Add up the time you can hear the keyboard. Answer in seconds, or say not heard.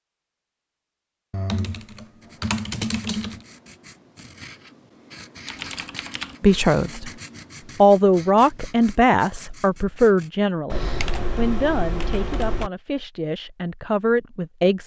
5 s.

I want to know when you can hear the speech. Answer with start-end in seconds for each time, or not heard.
6.4-7.1, 7.8-14.8.